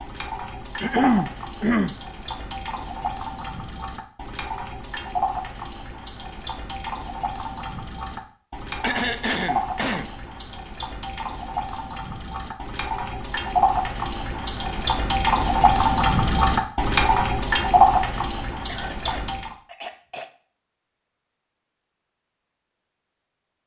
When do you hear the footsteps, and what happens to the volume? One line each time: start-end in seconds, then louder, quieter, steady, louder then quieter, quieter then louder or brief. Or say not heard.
not heard.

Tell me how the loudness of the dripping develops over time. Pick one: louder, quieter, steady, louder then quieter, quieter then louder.
louder.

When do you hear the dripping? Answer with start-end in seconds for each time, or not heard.
0.0-19.6.